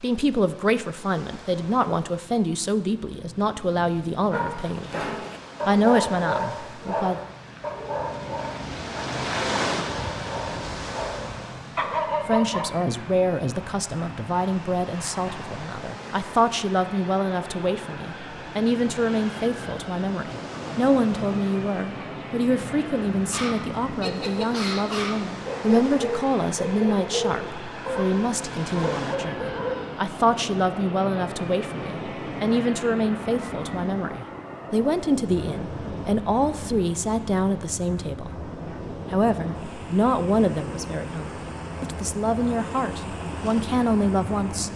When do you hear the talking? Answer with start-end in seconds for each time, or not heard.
0.0-7.2, 12.2-38.5, 39.1-44.7.